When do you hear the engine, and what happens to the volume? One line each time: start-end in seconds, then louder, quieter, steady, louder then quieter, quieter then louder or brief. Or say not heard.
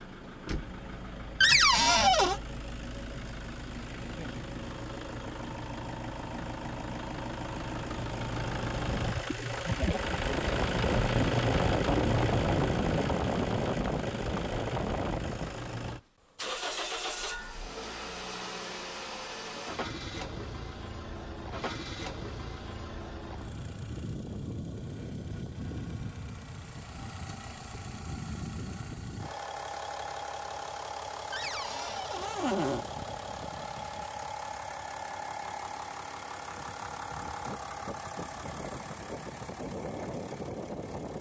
0.0-41.1 louder then quieter.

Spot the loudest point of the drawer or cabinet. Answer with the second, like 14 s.
2 s.